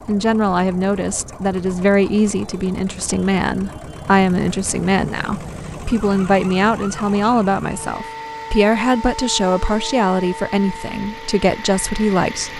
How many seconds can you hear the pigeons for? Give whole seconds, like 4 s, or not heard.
not heard.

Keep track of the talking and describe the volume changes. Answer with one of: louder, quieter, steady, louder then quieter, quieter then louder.
steady.